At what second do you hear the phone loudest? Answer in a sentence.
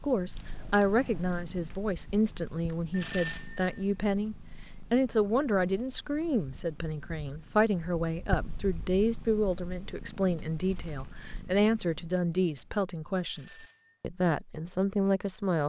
The loudest moment of the phone is at 3 seconds.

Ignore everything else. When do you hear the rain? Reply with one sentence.
The rain can't be heard in this clip.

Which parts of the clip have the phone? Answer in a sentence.
The phone can be heard from 2.9 to 3.9 s and from 13.2 to 14.1 s.